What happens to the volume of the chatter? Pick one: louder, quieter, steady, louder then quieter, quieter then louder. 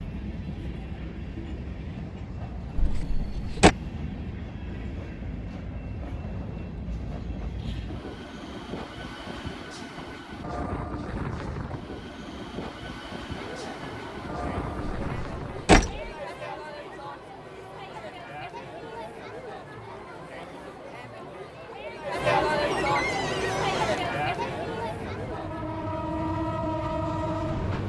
louder then quieter.